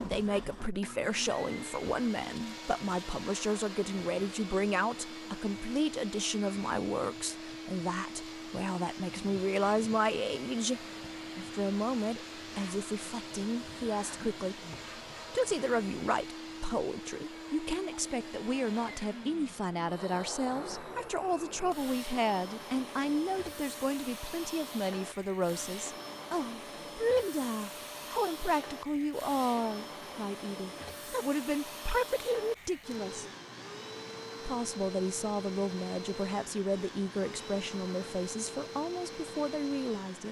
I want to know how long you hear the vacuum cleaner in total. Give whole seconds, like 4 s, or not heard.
40 s.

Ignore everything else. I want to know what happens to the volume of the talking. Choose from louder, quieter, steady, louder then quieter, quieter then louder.
steady.